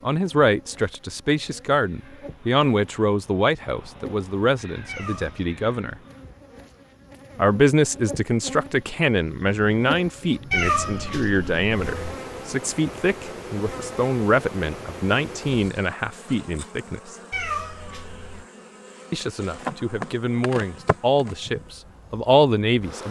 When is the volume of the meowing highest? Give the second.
11 s.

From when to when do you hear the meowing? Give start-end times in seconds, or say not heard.
4.8-5.5, 10.5-12.2, 17.3-18.4.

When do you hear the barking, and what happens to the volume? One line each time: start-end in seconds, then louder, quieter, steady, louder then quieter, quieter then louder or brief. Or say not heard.
not heard.